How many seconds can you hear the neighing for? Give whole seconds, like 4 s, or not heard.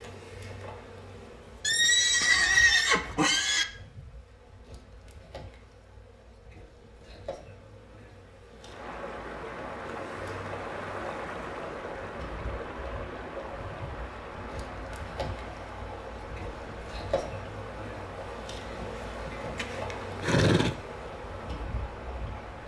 4 s.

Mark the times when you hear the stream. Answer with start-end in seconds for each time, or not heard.
8.6-22.6.